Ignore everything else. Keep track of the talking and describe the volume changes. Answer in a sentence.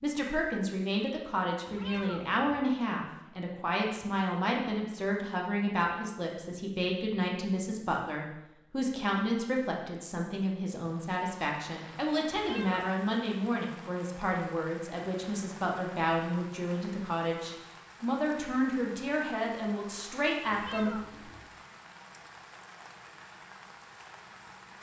The loudness of the talking stays about the same.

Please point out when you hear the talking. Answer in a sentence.
You can hear the talking from 0.0 to 21.3 s.